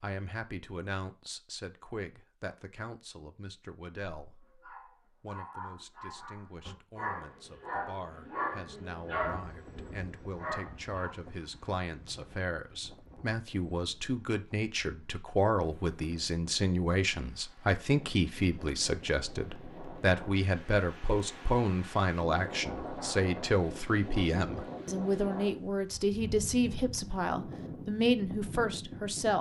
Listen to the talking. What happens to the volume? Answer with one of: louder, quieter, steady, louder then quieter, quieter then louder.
louder.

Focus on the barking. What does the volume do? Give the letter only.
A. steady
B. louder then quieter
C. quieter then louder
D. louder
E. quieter
B.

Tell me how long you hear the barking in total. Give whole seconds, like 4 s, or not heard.
7 s.